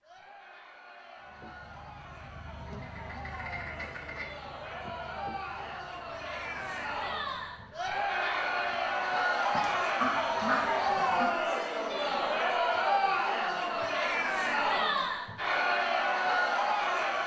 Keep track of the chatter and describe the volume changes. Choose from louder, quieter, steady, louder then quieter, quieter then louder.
louder.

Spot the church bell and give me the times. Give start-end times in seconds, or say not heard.
not heard.